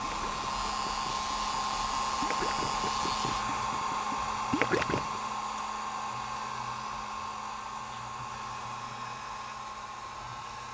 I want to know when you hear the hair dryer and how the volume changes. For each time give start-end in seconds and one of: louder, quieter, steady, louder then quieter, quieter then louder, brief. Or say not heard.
0.0-10.6 quieter.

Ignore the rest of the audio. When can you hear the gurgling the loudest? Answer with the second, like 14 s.
5 s.